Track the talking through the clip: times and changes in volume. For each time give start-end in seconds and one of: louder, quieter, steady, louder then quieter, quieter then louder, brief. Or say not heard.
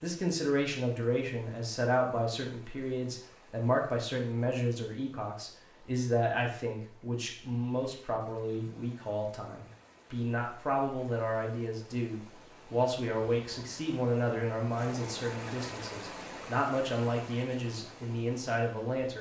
0.0-19.1 steady.